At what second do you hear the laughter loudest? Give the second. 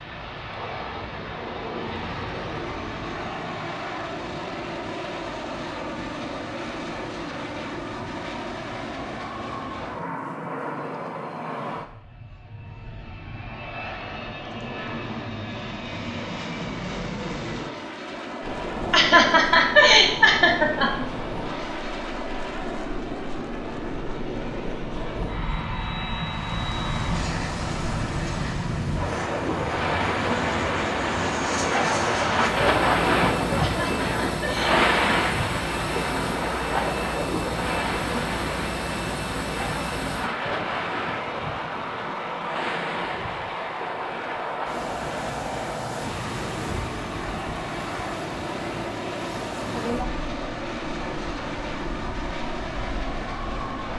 20 s.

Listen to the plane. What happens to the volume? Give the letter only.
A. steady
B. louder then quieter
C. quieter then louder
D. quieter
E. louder
A.